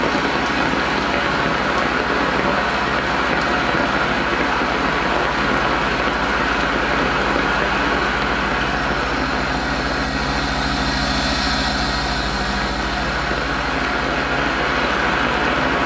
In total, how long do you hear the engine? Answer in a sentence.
The engine can be heard for 16 seconds in total.